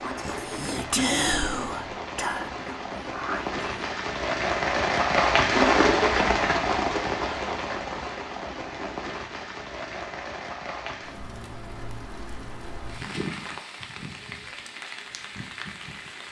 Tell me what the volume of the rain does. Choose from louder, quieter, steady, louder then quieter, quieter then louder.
louder then quieter.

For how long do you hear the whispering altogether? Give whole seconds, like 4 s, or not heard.
4 s.